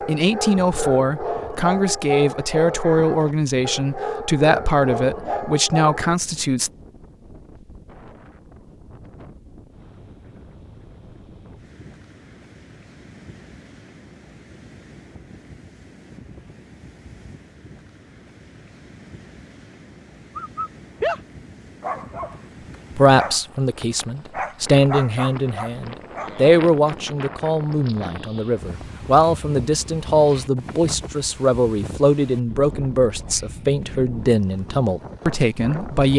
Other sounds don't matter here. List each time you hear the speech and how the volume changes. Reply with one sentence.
The speech can be heard from 0.1 to 6.7 s, at a steady volume; and from 22.9 to 36.1 s, at a steady volume.